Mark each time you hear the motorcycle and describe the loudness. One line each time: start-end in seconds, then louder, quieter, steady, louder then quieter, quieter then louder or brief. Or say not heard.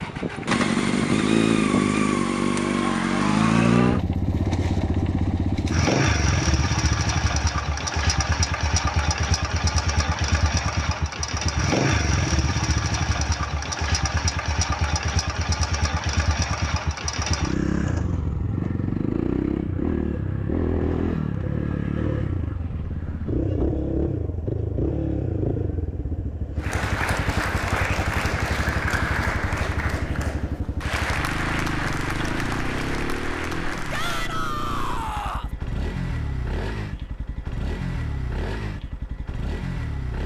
0.0-40.2 quieter.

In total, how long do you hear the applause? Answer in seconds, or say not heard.
8 s.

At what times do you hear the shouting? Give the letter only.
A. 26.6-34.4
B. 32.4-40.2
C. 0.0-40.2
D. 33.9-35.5
D.